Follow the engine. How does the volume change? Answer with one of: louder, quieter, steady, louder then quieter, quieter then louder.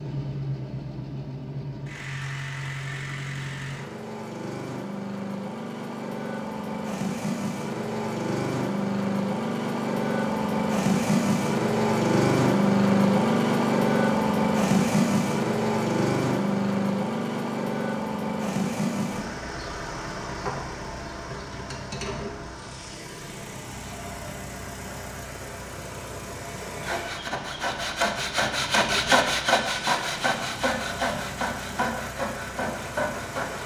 louder then quieter.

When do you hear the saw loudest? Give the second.
29 s.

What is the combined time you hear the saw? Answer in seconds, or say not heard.
7 s.